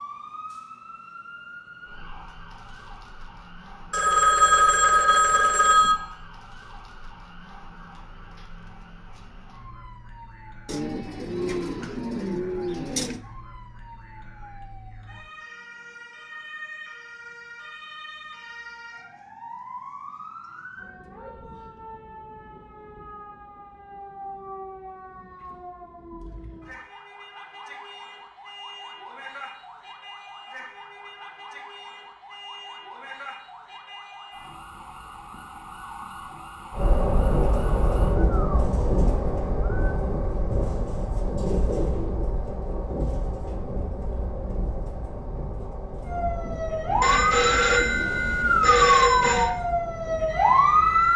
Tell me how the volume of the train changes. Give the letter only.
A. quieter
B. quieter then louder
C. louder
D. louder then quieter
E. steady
A.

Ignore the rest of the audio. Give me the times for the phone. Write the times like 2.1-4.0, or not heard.
3.9-6.0, 47.0-49.5.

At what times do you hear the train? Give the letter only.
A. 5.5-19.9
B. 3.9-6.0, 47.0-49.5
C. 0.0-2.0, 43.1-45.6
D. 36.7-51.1
D.